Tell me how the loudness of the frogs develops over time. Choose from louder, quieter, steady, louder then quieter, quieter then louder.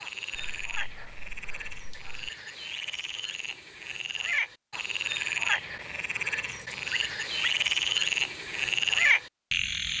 louder.